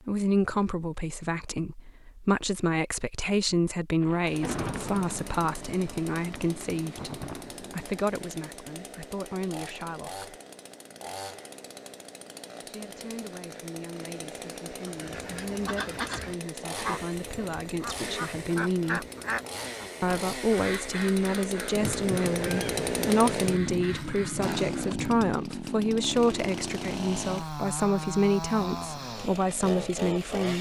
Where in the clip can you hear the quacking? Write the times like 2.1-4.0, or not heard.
14.8-24.9.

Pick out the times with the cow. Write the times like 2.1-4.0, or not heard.
not heard.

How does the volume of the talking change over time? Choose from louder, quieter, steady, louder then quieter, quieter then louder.
quieter then louder.